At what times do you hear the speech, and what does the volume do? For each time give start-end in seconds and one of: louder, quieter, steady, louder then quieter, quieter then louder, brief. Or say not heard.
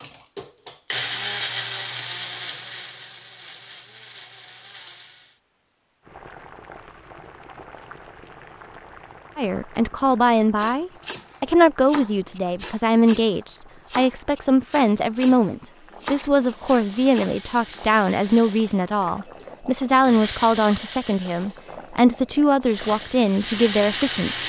9.3-24.4 steady.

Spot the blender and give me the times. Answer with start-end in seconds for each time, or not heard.
0.0-5.4, 16.4-21.6, 22.6-24.4.